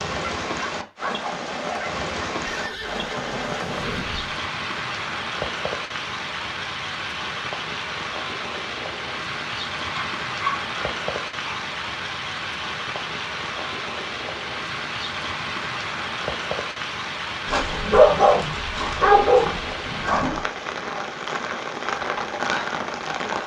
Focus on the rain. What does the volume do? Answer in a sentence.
The loudness of the rain stays about the same.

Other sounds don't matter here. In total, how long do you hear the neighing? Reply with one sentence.
You can hear the neighing for 2 seconds altogether.